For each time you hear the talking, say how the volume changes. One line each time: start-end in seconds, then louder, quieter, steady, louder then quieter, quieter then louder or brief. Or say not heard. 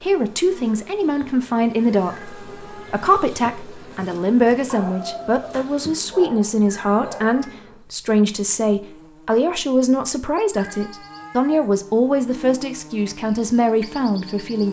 0.0-14.6 steady.